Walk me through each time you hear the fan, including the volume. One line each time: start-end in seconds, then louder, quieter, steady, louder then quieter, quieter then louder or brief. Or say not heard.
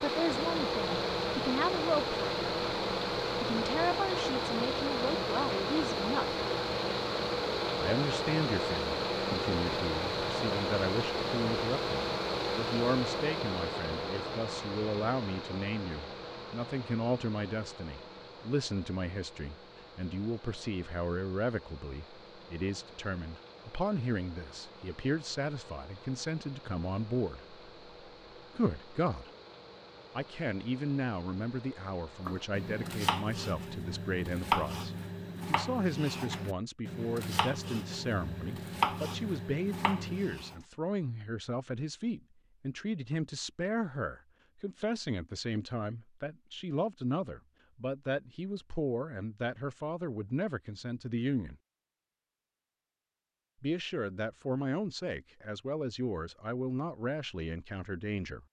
0.0-32.9 quieter.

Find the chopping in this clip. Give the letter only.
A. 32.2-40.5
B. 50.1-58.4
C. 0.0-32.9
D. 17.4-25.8
A.